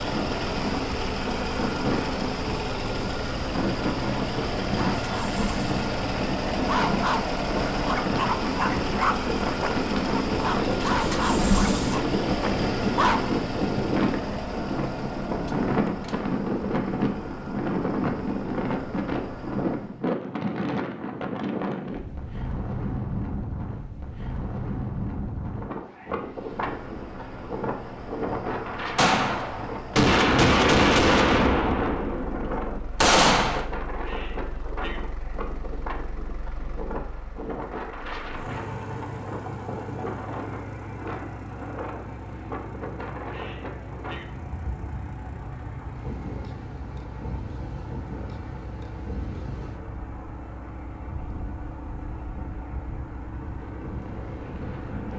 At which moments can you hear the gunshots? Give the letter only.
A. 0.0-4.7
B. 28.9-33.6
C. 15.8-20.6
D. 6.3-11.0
B.